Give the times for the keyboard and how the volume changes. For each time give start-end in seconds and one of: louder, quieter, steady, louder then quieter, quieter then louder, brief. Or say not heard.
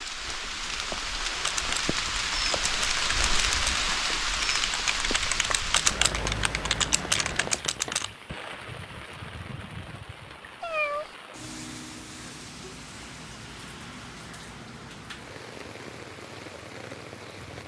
1.4-8.2 louder.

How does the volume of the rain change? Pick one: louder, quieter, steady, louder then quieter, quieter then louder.
quieter.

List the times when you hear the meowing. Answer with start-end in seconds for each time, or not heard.
10.6-11.1.